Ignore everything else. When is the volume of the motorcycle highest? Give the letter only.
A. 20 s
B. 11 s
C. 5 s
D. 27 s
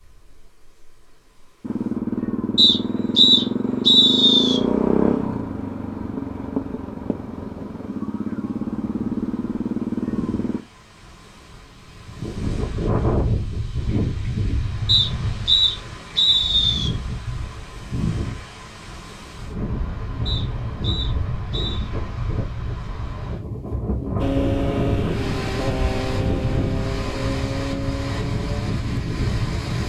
C.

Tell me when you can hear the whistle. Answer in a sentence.
The whistle can be heard from 2.5 to 4.6 s, from 14.8 to 16.9 s and from 20.2 to 21.9 s.